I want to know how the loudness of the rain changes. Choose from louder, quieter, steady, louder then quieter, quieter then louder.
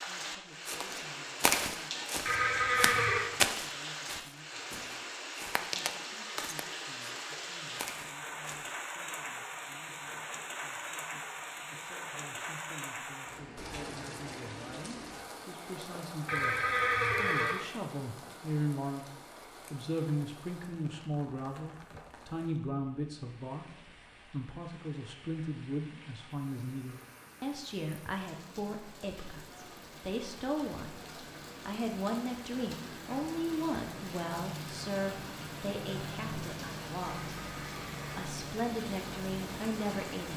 quieter then louder.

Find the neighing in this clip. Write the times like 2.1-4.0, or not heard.
2.2-3.2, 16.2-17.6, 37.1-38.2.